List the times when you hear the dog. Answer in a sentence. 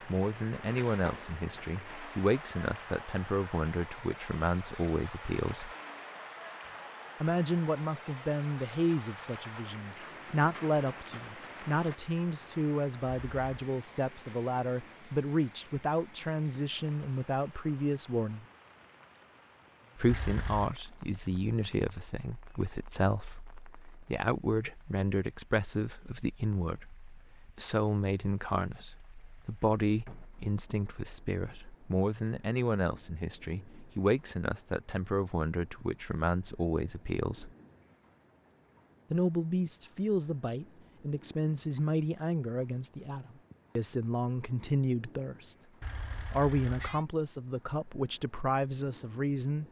You can't hear the dog here.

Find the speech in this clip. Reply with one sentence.
The speech can be heard from 0.0 to 5.7 s, from 7.2 to 18.4 s, from 19.9 to 37.5 s, from 39.1 to 45.5 s and from 46.3 to 49.6 s.